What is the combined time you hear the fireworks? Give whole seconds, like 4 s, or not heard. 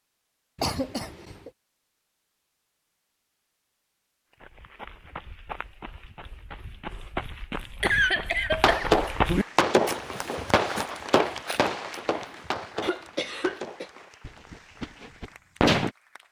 7 s.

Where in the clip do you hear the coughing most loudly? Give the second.
8 s.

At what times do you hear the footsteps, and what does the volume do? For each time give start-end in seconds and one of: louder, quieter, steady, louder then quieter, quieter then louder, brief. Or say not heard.
4.3-13.6 louder then quieter.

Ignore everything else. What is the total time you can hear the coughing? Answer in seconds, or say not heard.
3 s.